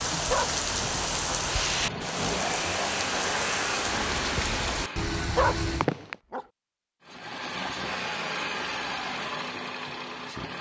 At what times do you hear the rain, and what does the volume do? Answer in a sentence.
You can hear the rain from 0.0 to 6.2 s, at a steady volume.